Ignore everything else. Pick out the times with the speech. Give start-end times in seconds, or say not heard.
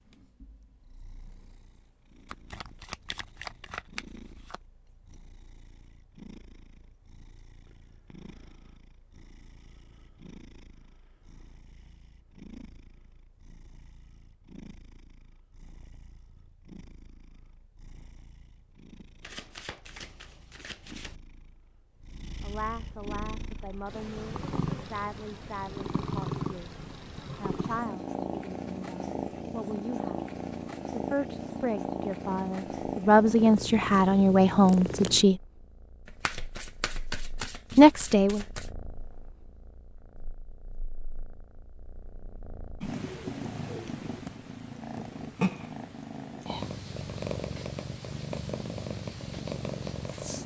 22.4-26.7, 27.4-30.2, 30.9-35.4, 37.8-38.5.